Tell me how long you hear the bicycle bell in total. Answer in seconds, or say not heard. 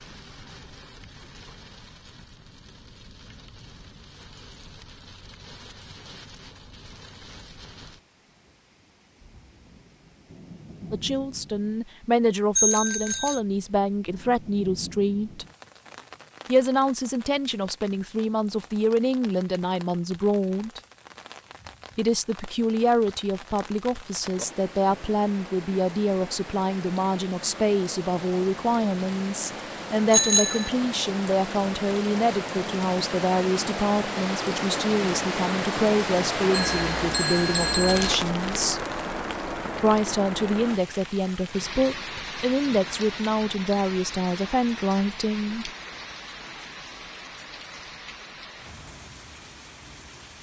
3 s.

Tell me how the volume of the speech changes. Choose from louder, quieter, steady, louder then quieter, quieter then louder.
steady.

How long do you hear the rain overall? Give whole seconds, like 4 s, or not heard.
50 s.